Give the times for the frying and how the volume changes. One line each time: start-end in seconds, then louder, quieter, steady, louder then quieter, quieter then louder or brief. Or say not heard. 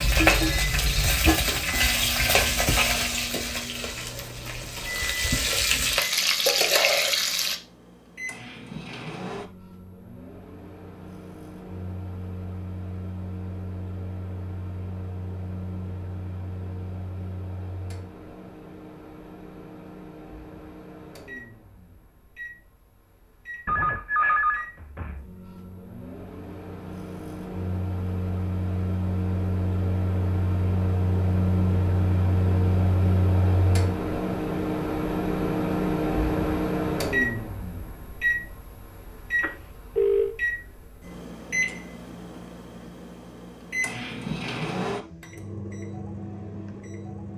0.0-7.5 quieter then louder.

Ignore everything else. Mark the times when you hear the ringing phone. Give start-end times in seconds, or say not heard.
0.0-1.2, 23.6-25.2, 39.4-40.4.